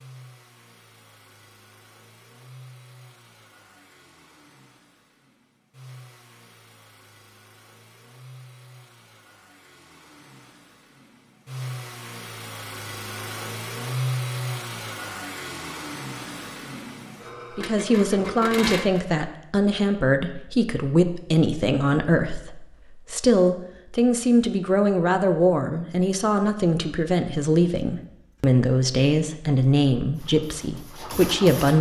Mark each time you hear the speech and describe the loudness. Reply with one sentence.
The speech can be heard from 17.5 to 31.7 s, at a steady volume.